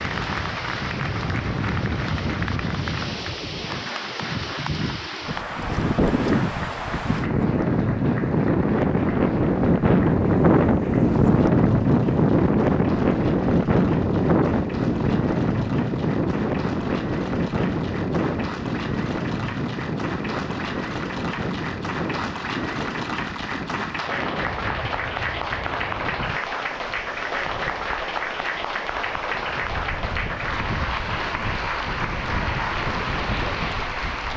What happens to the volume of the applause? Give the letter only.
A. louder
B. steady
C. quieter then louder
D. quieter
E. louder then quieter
C.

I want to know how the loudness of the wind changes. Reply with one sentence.
The volume of the wind goes up, then down.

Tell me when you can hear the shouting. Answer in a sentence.
You can't hear the shouting here.